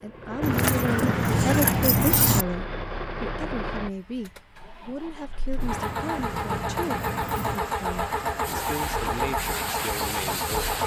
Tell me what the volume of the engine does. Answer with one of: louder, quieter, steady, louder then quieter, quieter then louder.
louder.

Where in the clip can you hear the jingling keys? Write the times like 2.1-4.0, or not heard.
0.4-2.5, 5.5-7.6.